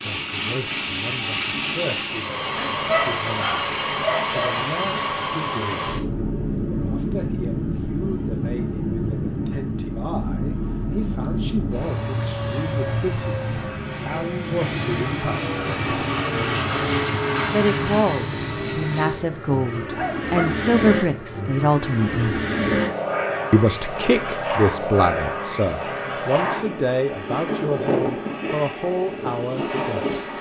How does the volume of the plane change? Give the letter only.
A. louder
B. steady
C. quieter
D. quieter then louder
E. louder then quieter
B.